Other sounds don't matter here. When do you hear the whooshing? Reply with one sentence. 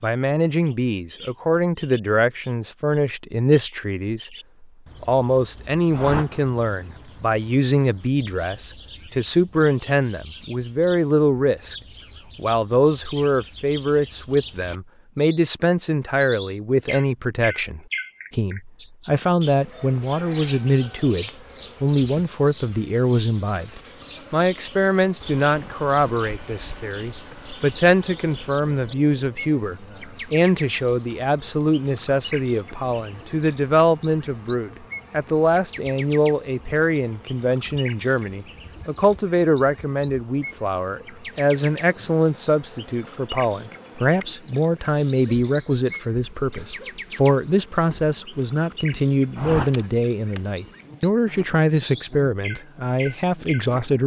You can hear the whooshing from 5.9 to 6.5 s and from 49.4 to 49.9 s.